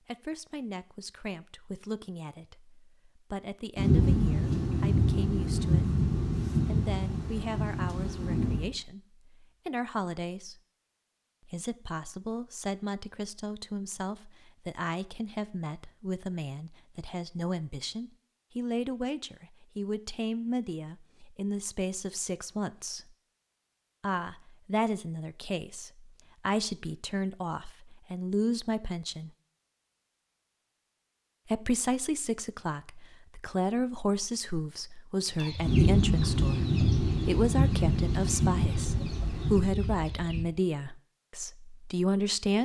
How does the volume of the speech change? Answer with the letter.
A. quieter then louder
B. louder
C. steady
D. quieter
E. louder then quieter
B.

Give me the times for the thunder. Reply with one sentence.
You can hear the thunder from 3.8 to 8.7 s and from 35.6 to 39.7 s.